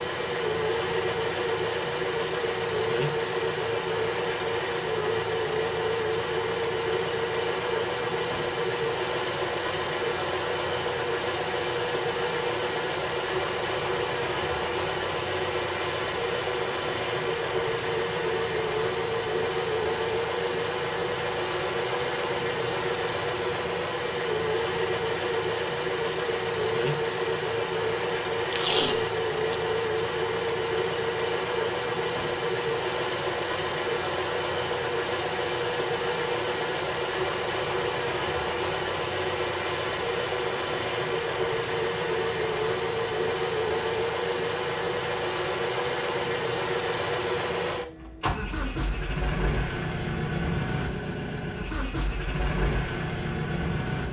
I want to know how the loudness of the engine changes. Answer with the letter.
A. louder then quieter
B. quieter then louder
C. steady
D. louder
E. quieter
C.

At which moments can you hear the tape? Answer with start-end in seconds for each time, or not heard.
28.4-29.7.